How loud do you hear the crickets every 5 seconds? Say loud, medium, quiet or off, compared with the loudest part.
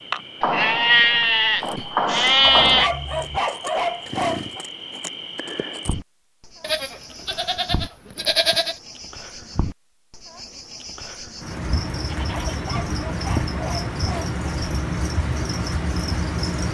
medium, medium, loud, loud.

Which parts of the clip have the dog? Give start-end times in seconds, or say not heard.
2.4-4.7, 12.3-14.3.